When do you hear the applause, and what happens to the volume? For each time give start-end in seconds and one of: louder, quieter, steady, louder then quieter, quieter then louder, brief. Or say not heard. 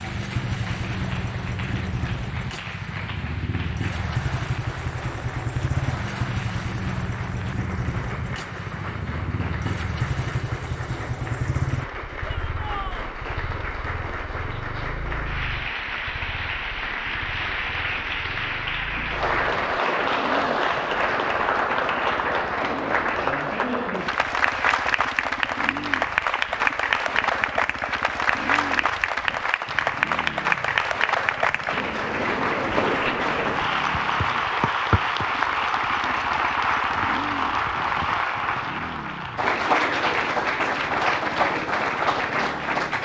0.0-43.0 louder.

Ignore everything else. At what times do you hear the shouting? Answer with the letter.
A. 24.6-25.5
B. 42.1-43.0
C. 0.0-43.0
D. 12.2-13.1
D.